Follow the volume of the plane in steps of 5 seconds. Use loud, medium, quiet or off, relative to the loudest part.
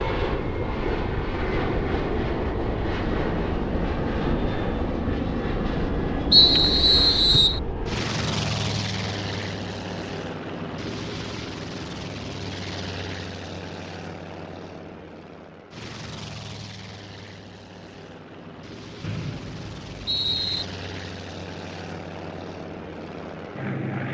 loud, loud, medium, quiet, medium.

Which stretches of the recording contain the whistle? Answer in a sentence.
The whistle can be heard from 6.3 to 7.6 s and from 19.0 to 20.6 s.